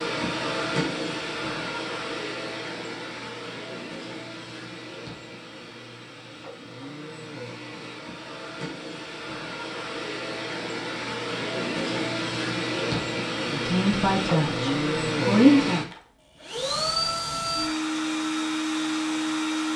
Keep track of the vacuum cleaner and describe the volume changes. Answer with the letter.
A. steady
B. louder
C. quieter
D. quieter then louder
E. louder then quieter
D.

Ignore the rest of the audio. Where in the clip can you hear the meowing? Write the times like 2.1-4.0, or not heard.
not heard.